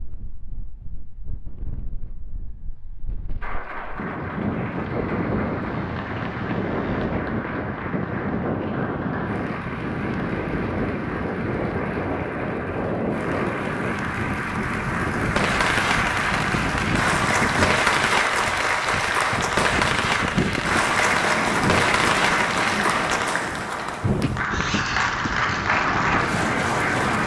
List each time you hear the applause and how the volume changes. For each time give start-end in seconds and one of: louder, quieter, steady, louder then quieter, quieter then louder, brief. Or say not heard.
3.4-27.2 louder.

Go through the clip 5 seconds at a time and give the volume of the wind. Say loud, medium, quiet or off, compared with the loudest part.
medium, loud, loud, loud, loud, loud.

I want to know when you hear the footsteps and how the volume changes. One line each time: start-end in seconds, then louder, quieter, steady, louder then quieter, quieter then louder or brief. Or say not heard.
not heard.